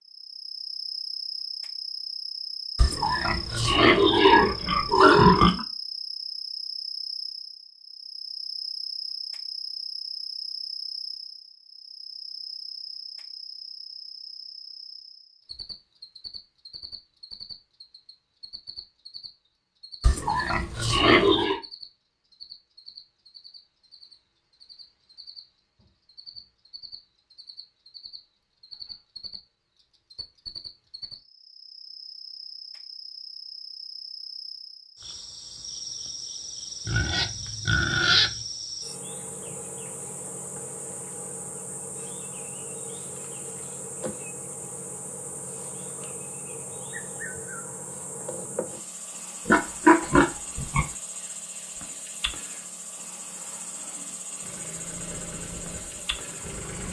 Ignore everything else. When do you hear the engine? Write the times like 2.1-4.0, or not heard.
54.4-56.8.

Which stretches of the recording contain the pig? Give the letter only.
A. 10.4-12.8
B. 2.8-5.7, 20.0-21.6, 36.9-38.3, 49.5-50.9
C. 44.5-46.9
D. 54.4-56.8
B.